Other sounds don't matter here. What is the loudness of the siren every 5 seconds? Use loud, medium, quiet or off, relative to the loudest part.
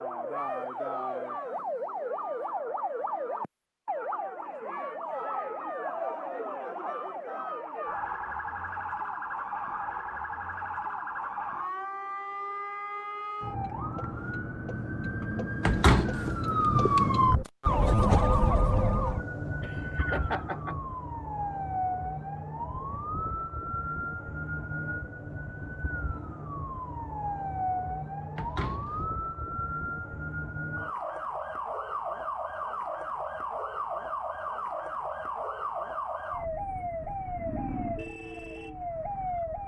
medium, medium, medium, loud, medium, medium, medium, medium.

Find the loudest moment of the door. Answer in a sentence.
The loudest moment of the door is at 16 seconds.